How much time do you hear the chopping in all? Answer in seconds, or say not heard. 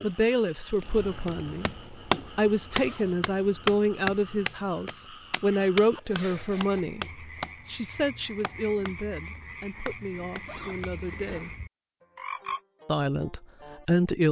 10 s.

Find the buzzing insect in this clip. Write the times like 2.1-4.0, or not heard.
not heard.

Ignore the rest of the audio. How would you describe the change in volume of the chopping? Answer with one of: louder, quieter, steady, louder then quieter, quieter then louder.
quieter.